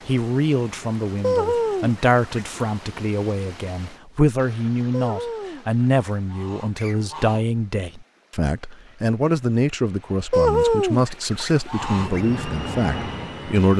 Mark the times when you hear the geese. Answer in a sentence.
You can hear the geese from 1.2 to 2.8 s, from 4.9 to 7.5 s and from 10.3 to 12.2 s.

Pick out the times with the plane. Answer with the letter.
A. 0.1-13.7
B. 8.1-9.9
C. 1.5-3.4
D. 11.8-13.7
D.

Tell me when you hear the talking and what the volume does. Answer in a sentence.
You can hear the talking from 0.1 to 13.7 s, at a steady volume.